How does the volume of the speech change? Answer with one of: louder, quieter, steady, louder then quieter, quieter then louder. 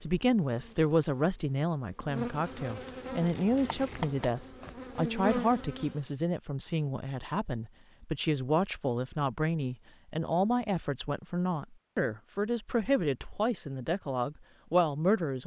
steady.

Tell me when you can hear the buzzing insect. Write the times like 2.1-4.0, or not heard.
0.0-6.0.